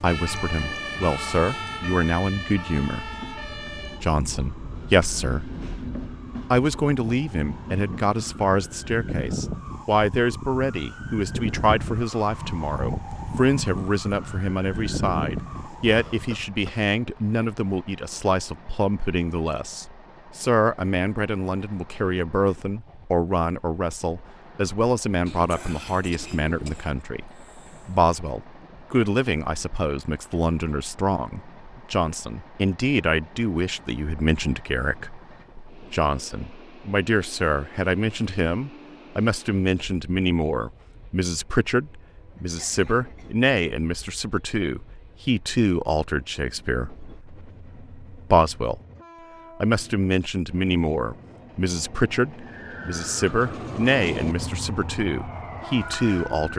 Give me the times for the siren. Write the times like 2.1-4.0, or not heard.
0.0-16.5, 52.4-56.5.